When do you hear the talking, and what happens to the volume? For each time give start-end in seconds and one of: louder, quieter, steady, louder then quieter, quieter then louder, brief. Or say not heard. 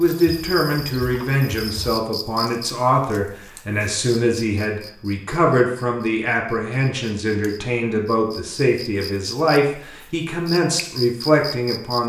0.0-12.0 steady.